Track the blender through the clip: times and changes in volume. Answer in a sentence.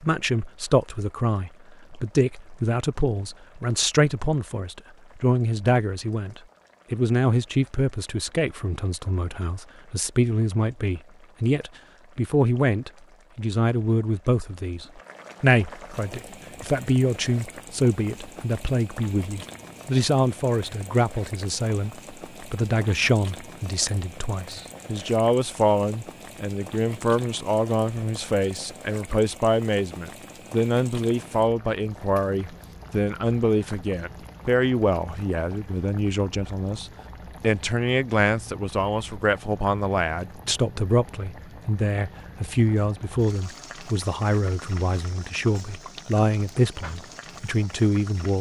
You can't hear the blender here.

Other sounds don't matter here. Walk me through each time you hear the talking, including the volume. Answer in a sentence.
You can hear the talking from 0.0 to 48.3 s, at a steady volume.